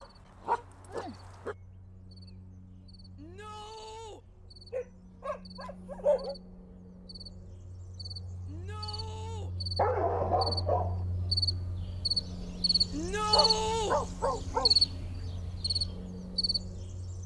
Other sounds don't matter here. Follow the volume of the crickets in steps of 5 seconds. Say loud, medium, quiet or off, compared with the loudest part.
quiet, quiet, loud, medium.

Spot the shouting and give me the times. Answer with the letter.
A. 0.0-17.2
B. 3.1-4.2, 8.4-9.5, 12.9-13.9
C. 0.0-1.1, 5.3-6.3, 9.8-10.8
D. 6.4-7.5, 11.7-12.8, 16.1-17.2
B.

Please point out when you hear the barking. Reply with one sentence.
You can hear the barking from 0.0 to 1.6 s, from 4.7 to 6.3 s, from 9.8 to 11.0 s and from 13.3 to 14.8 s.